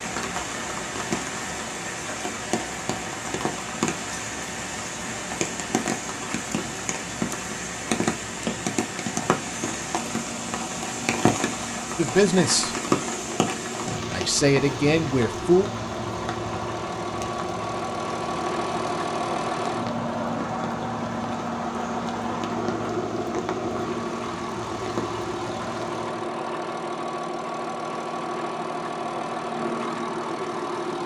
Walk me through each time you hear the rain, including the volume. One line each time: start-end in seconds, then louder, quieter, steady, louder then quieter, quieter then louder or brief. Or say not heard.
0.0-26.2 quieter.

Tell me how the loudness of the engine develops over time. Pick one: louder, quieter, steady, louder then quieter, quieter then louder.
louder.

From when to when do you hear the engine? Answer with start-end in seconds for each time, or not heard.
0.0-31.0.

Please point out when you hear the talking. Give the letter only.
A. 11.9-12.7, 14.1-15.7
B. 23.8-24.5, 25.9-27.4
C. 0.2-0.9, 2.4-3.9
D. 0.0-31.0
A.